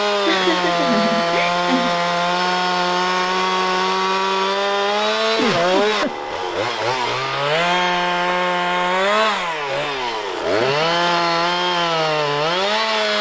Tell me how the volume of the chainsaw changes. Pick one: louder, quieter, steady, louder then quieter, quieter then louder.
steady.